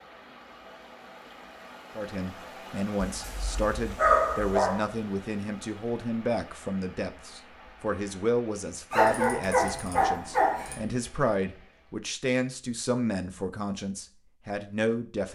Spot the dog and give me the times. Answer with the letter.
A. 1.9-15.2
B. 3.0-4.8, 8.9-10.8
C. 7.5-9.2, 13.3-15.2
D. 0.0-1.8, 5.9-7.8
B.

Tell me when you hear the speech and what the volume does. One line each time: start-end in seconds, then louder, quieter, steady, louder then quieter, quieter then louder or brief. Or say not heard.
1.9-15.2 steady.